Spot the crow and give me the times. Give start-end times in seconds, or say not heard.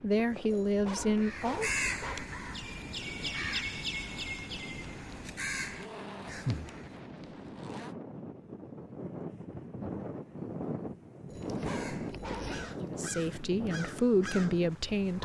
1.1-7.0, 11.6-15.1.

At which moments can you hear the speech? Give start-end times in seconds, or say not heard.
0.0-1.7, 12.9-15.1.